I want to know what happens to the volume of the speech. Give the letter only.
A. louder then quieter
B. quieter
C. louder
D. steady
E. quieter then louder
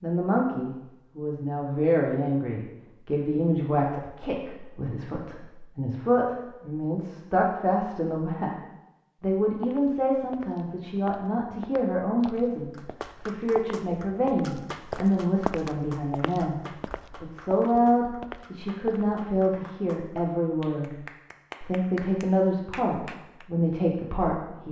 D.